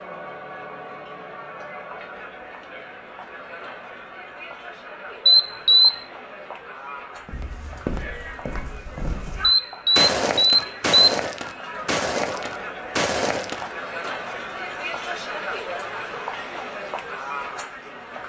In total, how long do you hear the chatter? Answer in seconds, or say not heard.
18 s.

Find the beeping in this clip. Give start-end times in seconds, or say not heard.
5.2-6.0, 9.4-11.1.